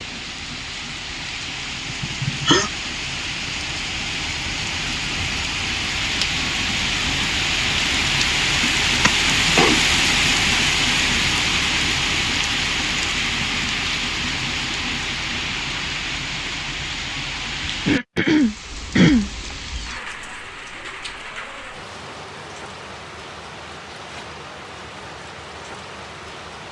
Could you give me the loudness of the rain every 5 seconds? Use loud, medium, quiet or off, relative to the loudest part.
medium, loud, loud, medium, quiet, quiet.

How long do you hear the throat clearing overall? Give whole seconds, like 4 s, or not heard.
3 s.